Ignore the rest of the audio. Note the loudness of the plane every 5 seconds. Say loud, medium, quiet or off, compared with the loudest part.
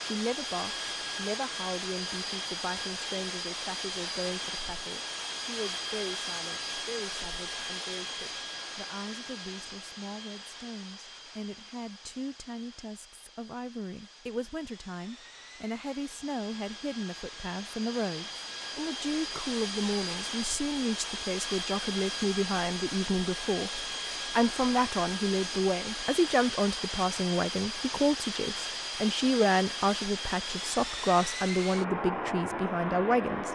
loud, loud, quiet, medium, loud, loud, loud.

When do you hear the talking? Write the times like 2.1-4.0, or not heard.
0.0-33.5.